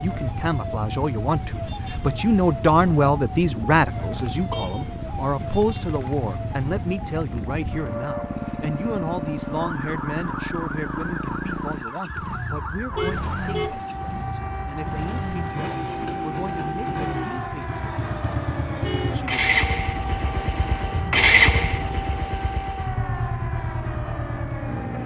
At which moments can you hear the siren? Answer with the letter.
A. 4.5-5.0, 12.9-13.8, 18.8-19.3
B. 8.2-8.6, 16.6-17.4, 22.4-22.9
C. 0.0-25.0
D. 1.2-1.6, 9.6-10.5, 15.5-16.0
C.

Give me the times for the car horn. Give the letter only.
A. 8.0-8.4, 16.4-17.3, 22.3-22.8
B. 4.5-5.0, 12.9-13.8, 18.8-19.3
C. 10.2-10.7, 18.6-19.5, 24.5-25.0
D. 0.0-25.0
B.